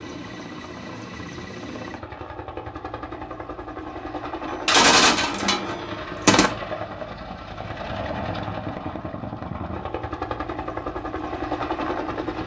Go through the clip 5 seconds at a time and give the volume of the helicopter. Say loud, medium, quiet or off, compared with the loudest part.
medium, loud, loud.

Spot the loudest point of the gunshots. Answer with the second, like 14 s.
5 s.